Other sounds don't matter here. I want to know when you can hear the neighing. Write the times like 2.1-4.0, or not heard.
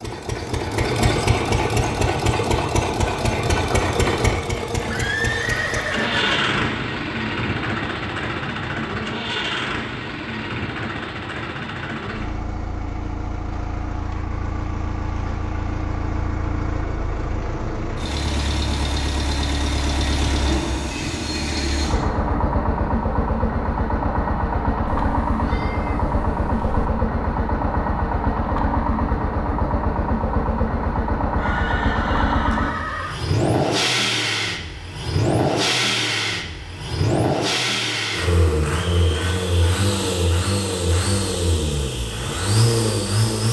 4.8-6.6, 20.9-22.1, 31.4-33.2.